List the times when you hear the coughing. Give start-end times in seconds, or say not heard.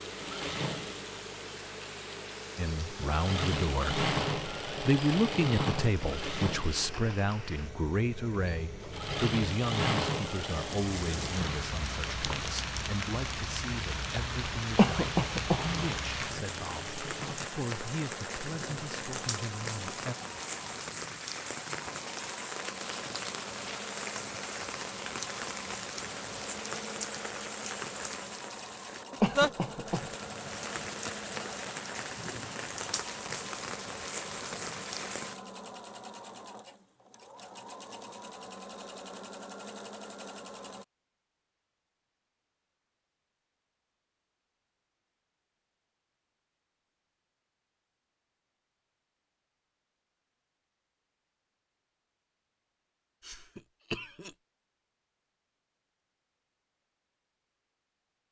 14.8-15.7, 29.2-30.1, 53.2-54.4.